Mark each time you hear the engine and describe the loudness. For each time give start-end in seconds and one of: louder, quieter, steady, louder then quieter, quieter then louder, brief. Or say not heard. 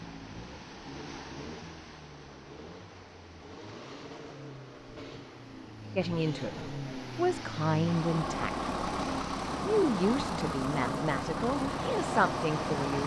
0.0-13.0 louder.